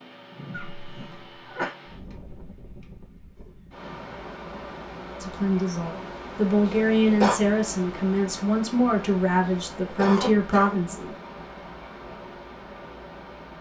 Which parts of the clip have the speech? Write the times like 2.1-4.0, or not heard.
5.2-11.2.